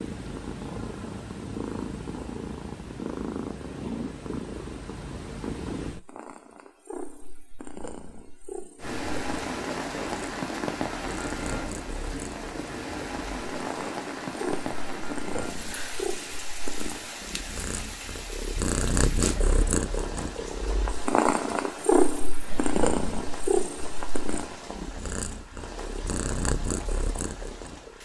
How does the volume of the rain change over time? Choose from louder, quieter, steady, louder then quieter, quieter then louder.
quieter.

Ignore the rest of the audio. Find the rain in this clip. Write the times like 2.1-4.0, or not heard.
8.8-28.0.